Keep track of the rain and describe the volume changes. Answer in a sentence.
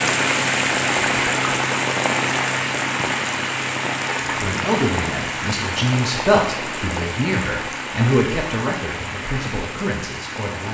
The volume of the rain goes down.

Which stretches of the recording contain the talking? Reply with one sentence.
You can hear the talking from 4.2 to 10.7 s.